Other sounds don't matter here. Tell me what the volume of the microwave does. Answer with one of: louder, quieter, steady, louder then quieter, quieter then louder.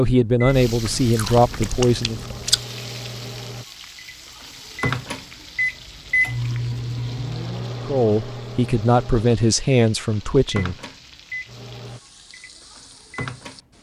louder then quieter.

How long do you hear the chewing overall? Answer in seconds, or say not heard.
2 s.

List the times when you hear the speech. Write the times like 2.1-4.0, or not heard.
0.0-2.2, 7.8-10.8.